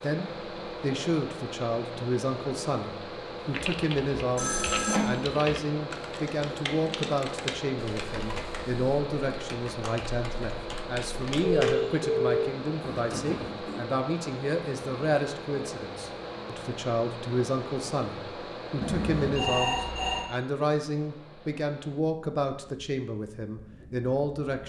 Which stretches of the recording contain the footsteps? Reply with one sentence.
The footsteps can't be heard in this clip.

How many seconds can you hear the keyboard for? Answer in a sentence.
The keyboard can be heard for 8 seconds in total.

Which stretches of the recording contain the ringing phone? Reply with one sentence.
The ringing phone can be heard from 4.3 to 5.2 s, from 11.4 to 13.8 s and from 18.8 to 20.3 s.